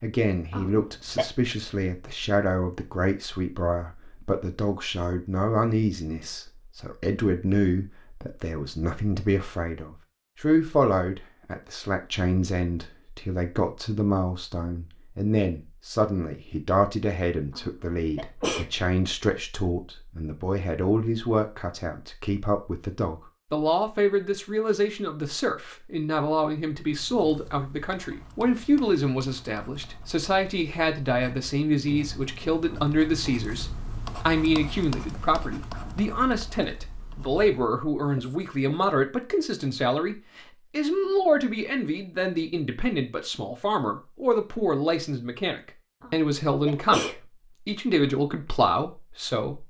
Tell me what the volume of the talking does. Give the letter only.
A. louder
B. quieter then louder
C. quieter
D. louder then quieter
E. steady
E.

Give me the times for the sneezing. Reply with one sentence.
You can hear the sneezing from 0.5 to 1.2 s, from 17.5 to 18.7 s and from 46.0 to 47.2 s.